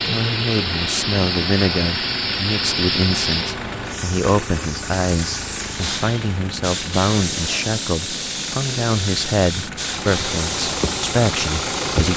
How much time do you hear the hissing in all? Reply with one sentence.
The hissing can be heard for 12 seconds in total.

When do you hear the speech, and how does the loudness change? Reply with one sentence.
The speech can be heard from 0.0 to 12.1 s, at a steady volume.